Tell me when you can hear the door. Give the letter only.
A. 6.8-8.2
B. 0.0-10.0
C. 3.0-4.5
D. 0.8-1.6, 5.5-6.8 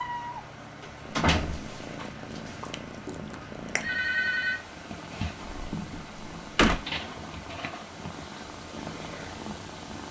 D.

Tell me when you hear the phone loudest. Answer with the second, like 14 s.
4 s.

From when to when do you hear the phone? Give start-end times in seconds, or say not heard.
3.0-4.5.